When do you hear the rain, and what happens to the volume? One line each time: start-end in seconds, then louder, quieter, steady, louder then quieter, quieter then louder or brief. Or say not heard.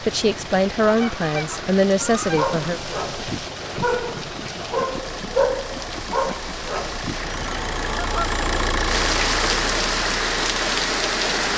0.0-11.5 louder.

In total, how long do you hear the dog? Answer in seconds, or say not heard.
5 s.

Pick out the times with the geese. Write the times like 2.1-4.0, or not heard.
0.8-2.5, 7.2-8.8.